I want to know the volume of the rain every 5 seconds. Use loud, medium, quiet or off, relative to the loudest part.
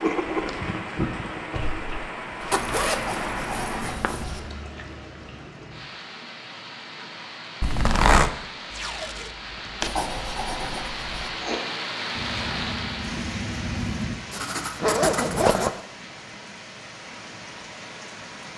loud, medium, loud, medium.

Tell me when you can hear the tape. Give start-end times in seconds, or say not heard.
8.7-10.0.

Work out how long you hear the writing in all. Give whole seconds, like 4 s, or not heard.
10 s.